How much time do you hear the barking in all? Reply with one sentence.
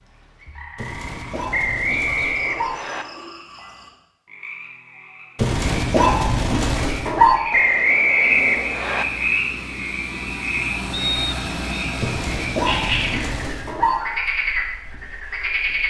The barking can be heard for 6 seconds in total.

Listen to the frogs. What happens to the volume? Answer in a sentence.
The volume of the frogs goes up.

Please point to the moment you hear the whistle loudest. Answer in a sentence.
The volume of the whistle peaks at 8 seconds.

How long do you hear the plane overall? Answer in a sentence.
You can hear the plane for 5 seconds altogether.